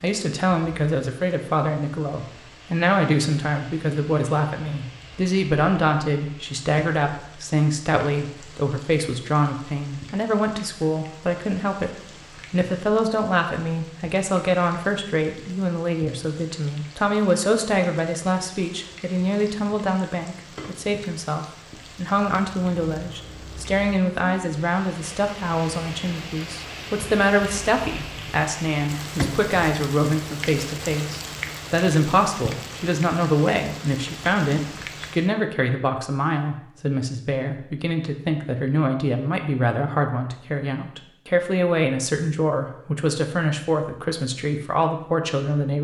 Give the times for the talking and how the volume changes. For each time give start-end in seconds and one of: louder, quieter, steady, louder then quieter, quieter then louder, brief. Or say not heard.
0.0-45.7 steady.